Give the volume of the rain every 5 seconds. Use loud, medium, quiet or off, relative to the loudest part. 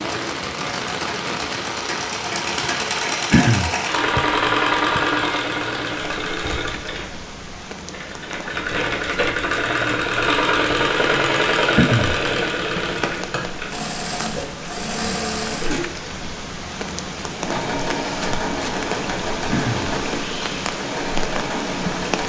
loud, medium, medium, loud, loud.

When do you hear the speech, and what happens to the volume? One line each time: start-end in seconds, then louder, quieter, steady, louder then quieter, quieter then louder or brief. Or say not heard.
not heard.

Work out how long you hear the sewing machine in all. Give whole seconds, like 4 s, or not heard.
21 s.